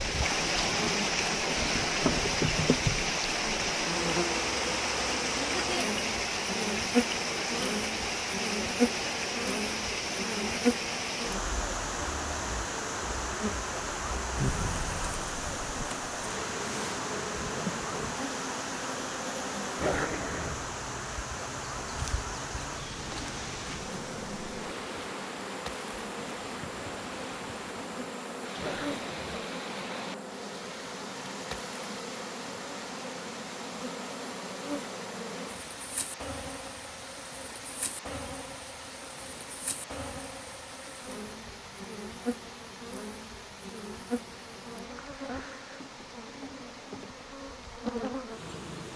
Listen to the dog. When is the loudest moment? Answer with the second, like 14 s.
20 s.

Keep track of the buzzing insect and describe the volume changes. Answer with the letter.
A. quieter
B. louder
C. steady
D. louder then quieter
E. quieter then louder
A.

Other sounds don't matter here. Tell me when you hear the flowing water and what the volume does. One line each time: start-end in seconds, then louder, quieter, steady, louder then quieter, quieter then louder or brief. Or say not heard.
0.0-48.9 quieter.